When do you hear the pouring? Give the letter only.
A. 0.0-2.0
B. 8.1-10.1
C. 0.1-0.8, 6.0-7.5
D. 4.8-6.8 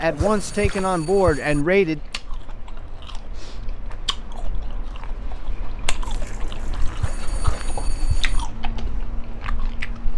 C.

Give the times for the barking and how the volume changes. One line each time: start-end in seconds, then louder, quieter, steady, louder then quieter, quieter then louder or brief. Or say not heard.
not heard.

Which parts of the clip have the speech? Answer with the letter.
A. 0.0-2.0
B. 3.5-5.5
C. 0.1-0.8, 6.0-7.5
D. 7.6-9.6
A.